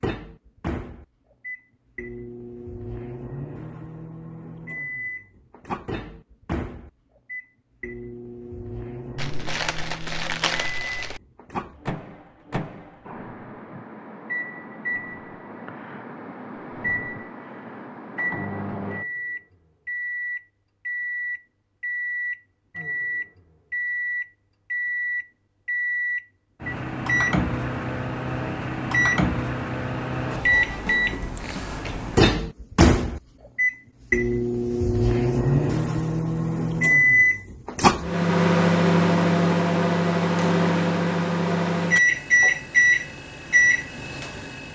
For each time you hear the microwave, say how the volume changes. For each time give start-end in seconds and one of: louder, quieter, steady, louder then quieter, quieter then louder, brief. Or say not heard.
0.0-44.7 louder.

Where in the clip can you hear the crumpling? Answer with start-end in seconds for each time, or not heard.
9.2-11.2.